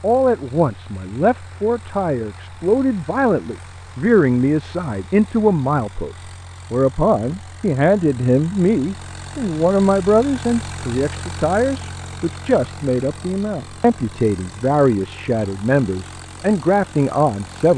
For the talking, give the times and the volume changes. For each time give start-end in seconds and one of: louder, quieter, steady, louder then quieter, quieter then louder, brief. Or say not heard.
0.0-17.7 steady.